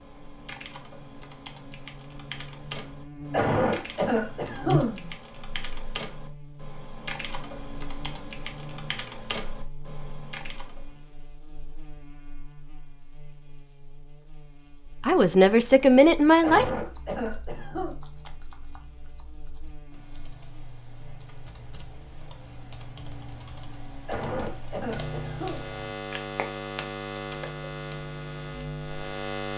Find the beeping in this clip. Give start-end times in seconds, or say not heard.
not heard.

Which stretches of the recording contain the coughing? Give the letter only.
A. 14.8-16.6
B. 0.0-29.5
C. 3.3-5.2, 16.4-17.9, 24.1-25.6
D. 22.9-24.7
C.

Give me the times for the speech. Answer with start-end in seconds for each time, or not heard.
14.8-16.6.